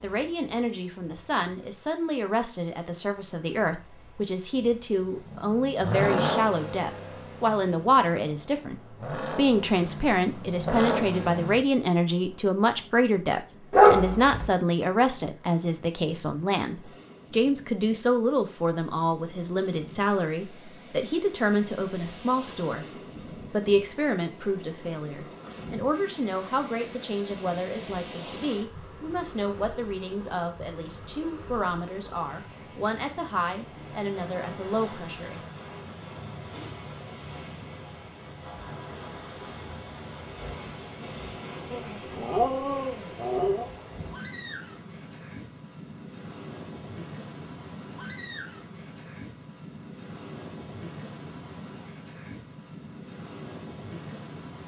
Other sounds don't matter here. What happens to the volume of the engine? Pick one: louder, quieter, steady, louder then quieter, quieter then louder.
quieter then louder.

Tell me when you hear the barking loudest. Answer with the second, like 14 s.
14 s.